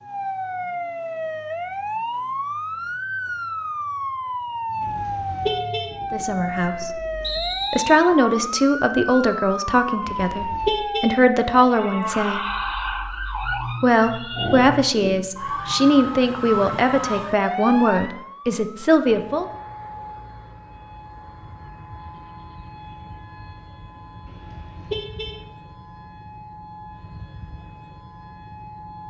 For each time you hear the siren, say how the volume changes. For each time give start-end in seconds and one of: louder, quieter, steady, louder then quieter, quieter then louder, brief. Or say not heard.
0.0-29.0 quieter.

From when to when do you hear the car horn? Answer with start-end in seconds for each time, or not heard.
4.8-6.0, 10.1-11.2, 24.2-25.4.